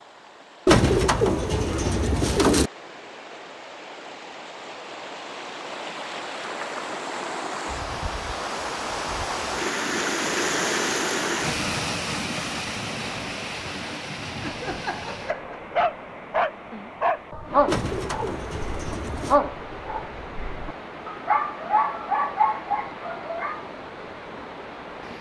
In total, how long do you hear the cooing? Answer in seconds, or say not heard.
4 s.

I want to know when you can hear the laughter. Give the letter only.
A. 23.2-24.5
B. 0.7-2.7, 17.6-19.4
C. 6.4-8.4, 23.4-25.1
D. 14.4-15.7
D.